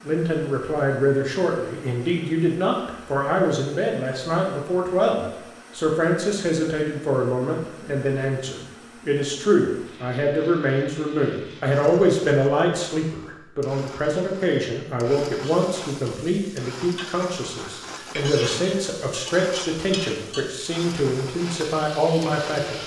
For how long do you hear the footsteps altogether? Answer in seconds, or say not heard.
not heard.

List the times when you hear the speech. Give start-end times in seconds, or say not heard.
0.0-22.8.